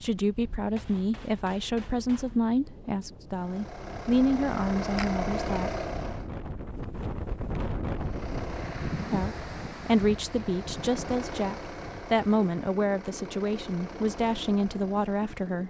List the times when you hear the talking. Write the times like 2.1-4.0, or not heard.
0.0-5.8, 9.0-15.6.